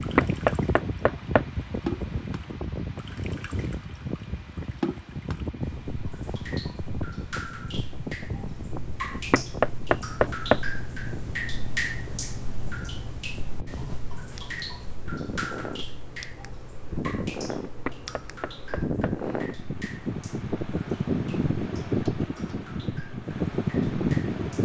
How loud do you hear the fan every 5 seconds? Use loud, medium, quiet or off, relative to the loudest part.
medium, medium, quiet, medium, loud.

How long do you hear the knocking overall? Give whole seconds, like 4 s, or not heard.
4 s.